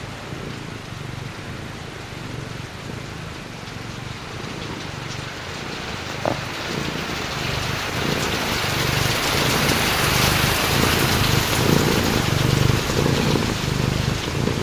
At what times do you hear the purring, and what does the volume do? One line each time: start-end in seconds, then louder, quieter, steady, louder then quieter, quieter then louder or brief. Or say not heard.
0.0-14.5 louder.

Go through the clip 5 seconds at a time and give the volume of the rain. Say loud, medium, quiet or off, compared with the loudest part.
quiet, loud, loud.